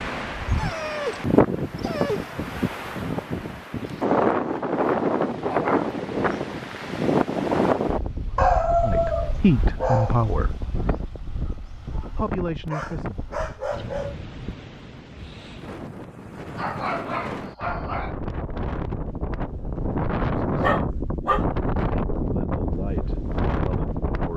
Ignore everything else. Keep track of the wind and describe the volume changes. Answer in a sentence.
The loudness of the wind goes down, then up.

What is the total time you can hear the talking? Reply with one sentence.
You can hear the talking for 6 seconds altogether.